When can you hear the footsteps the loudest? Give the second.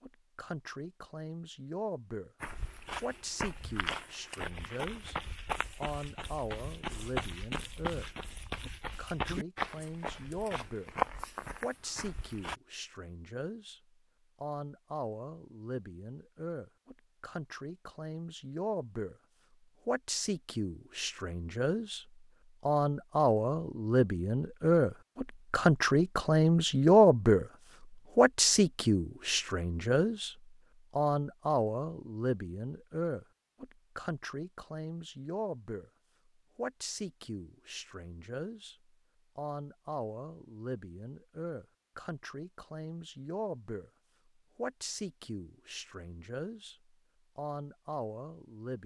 11 s.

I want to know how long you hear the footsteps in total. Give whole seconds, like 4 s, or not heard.
10 s.